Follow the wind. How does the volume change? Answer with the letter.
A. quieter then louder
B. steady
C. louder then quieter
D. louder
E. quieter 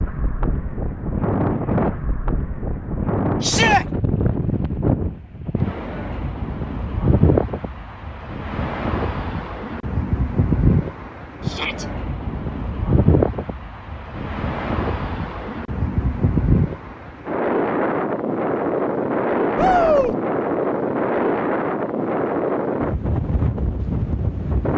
B.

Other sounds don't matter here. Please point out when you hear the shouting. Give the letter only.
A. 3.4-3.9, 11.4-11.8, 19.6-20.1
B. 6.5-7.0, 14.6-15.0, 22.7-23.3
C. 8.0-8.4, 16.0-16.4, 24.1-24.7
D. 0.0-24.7
A.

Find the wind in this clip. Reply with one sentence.
You can hear the wind from 0.0 to 24.7 s.